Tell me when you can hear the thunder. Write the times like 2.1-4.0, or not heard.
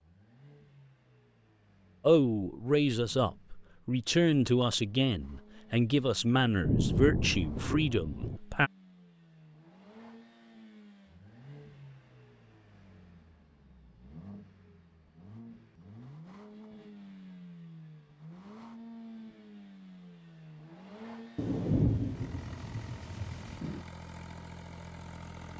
6.6-8.4, 21.4-23.8.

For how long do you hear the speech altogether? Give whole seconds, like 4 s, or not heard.
7 s.